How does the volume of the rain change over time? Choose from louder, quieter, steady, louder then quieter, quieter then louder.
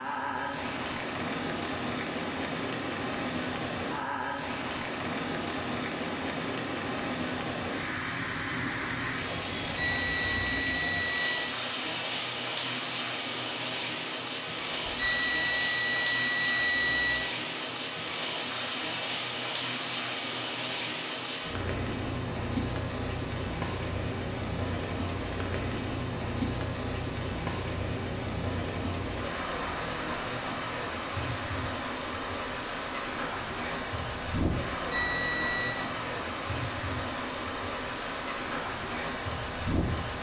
steady.